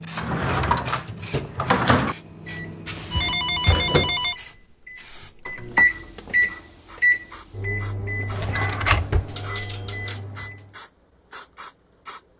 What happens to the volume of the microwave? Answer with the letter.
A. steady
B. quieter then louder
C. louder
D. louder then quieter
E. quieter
D.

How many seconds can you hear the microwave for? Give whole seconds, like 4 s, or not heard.
11 s.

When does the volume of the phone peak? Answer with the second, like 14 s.
4 s.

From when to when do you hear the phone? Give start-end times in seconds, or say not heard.
2.9-4.3, 9.3-10.2.